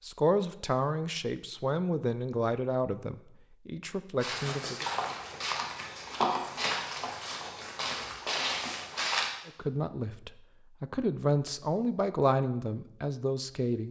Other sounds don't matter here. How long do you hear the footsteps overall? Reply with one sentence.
You can hear the footsteps for 5 seconds altogether.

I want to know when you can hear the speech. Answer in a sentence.
You can hear the speech from 0.0 to 4.8 s and from 9.4 to 13.8 s.